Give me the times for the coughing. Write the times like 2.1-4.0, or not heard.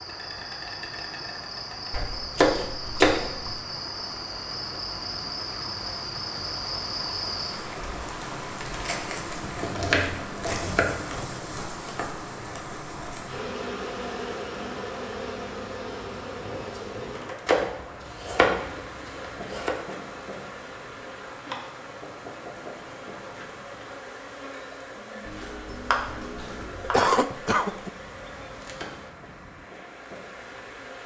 26.4-27.9.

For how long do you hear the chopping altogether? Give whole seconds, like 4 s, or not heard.
7 s.